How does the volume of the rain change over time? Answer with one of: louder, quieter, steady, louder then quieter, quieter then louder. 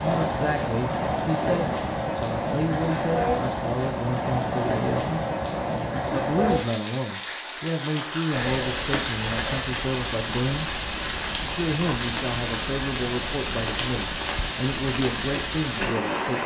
steady.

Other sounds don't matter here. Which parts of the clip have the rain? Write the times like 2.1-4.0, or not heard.
0.0-16.4.